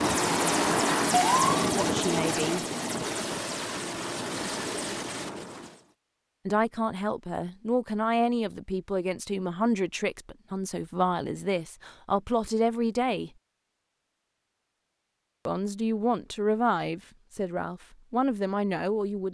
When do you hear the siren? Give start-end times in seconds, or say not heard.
0.0-1.7.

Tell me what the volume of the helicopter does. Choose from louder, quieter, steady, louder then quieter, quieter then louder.
quieter.